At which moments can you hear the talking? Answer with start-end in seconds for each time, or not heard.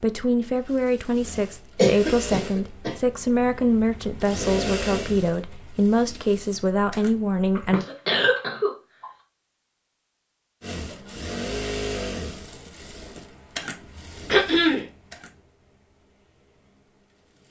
0.0-7.8.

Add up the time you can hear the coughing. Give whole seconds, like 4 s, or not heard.
3 s.